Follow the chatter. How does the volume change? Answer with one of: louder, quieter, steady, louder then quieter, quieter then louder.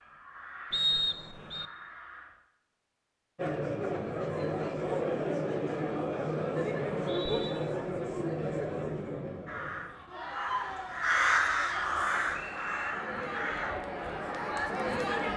quieter then louder.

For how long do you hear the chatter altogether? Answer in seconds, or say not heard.
12 s.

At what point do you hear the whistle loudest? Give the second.
1 s.